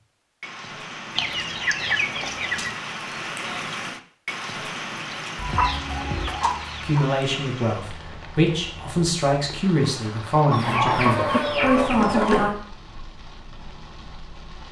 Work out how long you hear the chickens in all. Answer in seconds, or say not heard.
5 s.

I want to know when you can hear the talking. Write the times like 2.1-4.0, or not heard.
6.8-12.6.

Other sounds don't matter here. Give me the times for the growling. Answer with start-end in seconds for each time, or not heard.
not heard.